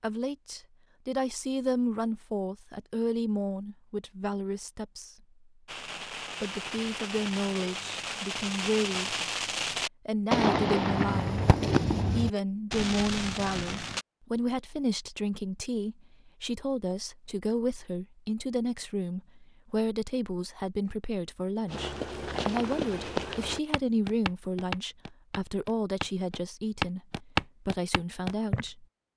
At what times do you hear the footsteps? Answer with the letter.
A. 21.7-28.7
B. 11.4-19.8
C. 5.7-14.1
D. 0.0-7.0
A.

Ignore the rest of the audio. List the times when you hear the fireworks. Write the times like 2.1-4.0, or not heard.
5.7-14.1.